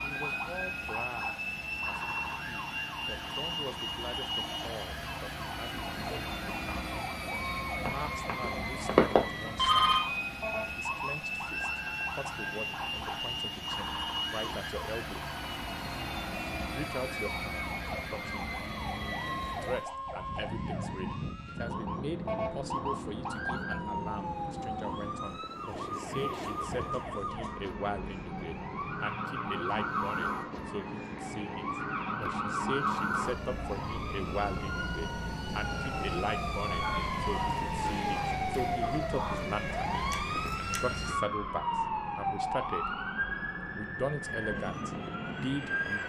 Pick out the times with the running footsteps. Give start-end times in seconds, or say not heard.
not heard.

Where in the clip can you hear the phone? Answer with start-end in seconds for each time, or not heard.
7.8-10.0.